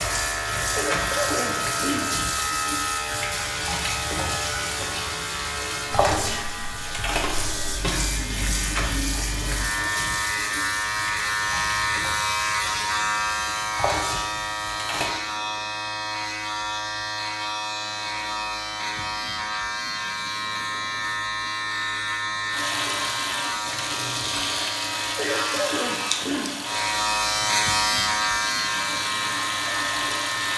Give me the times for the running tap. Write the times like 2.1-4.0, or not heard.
0.0-15.2, 22.5-30.5.